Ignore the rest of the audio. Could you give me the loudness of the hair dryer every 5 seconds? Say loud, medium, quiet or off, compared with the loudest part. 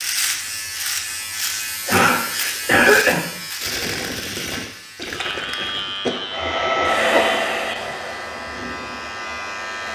off, loud.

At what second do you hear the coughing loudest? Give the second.
3 s.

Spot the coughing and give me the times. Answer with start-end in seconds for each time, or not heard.
1.9-3.3, 6.0-7.5.